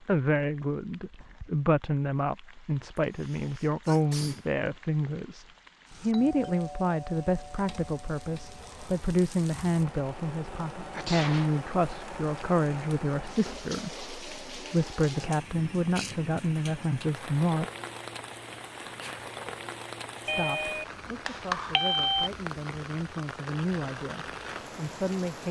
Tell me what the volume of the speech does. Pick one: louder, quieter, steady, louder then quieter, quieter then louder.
quieter.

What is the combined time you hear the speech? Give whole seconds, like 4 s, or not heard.
23 s.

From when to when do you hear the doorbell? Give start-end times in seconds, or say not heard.
6.1-8.6, 20.2-22.3.